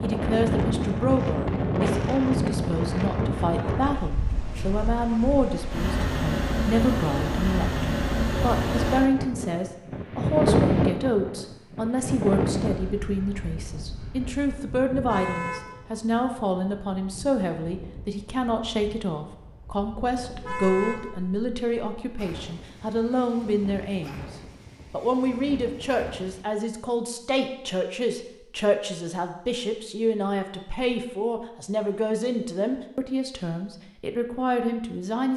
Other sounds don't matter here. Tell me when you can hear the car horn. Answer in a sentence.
You can hear the car horn from 15.1 to 15.8 s and from 20.4 to 21.1 s.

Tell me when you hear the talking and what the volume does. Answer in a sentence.
You can hear the talking from 0.0 to 24.2 s, at a steady volume; and from 24.9 to 35.3 s, at a steady volume.